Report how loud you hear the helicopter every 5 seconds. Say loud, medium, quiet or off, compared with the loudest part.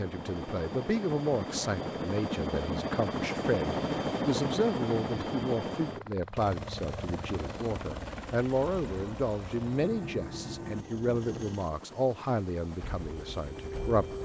loud, medium, medium.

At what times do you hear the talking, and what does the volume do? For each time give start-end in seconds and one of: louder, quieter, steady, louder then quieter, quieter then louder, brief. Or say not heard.
0.0-14.2 steady.